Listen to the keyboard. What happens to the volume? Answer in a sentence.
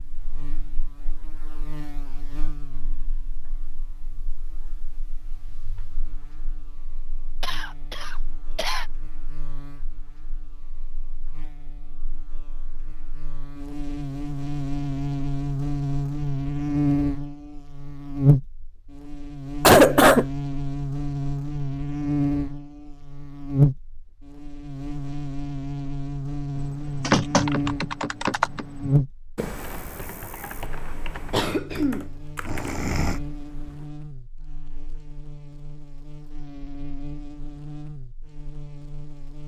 The loudness of the keyboard goes down.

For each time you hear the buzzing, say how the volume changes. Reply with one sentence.
You can hear the buzzing from 0.0 to 39.4 s, getting louder then quieter.